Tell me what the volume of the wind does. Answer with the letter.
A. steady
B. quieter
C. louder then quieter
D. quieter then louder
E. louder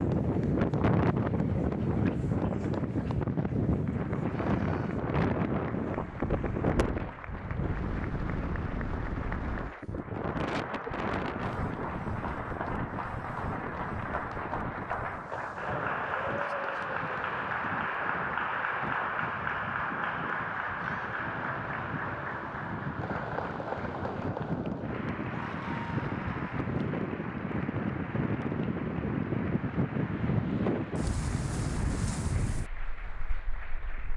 D.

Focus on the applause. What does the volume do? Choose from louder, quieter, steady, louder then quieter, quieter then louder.
louder then quieter.